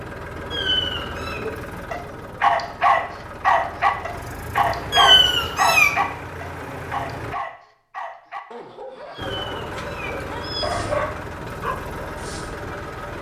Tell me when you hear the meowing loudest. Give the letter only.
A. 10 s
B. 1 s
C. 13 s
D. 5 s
D.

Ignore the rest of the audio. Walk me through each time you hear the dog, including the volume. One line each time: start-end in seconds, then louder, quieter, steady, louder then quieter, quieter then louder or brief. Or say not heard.
1.2-12.7 quieter.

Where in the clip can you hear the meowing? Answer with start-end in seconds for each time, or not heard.
0.5-1.4, 4.9-5.9, 9.2-11.1.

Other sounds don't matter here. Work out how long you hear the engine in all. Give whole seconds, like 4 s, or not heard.
11 s.